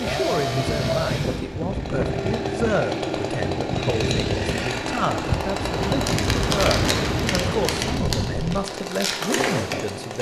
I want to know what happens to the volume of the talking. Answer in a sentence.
The volume of the talking stays about the same.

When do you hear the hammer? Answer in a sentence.
You can't hear the hammer here.